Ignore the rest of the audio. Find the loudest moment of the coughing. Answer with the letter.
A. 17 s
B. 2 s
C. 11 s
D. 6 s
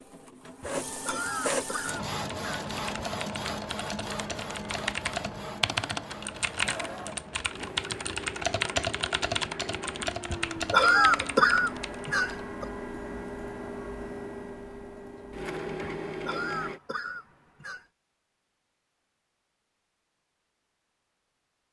C.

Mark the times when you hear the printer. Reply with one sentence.
You can hear the printer from 0.0 to 16.8 s.